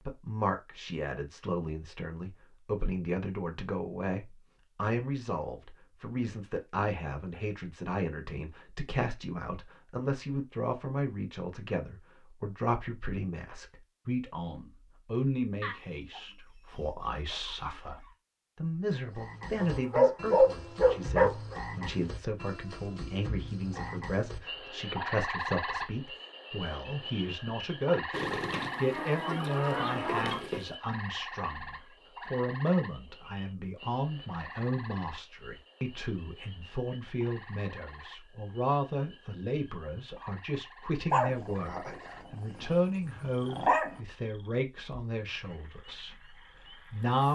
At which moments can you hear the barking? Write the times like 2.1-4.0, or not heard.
19.6-21.6, 41.1-44.0.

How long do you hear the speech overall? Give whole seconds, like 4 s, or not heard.
47 s.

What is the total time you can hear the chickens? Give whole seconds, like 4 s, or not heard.
5 s.